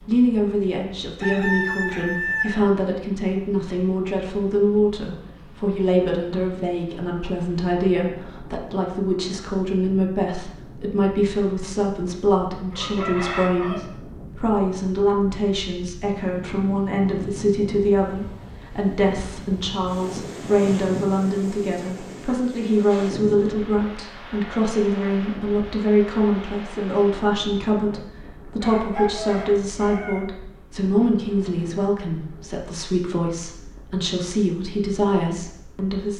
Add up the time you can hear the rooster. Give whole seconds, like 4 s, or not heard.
4 s.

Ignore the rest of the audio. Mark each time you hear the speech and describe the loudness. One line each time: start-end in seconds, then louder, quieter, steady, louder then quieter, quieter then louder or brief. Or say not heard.
0.1-36.1 steady.